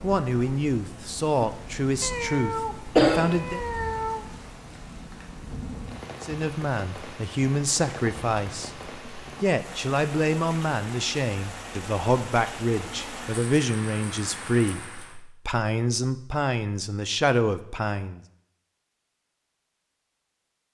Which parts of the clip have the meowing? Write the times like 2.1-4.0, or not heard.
2.0-4.2.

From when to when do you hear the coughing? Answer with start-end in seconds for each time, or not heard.
3.0-4.0.